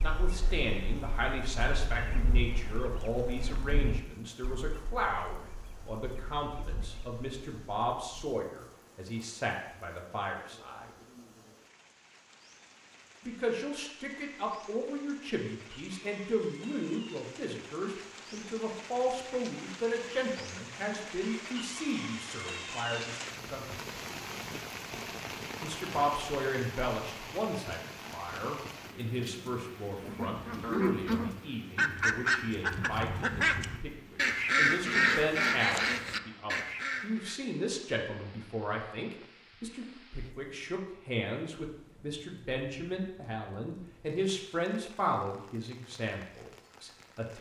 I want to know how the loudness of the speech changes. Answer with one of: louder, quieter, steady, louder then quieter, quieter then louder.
steady.